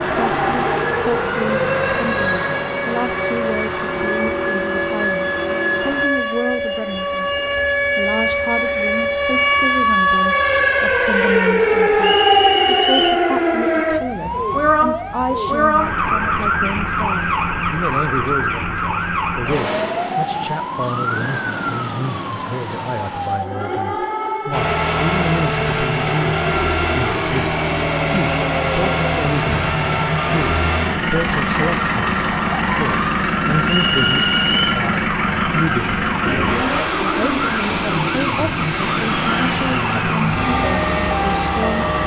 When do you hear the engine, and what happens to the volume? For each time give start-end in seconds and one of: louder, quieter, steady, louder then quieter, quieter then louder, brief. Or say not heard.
0.0-6.0 steady
24.5-42.0 steady.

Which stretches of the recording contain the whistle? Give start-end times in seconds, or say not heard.
12.0-13.2, 33.6-34.8.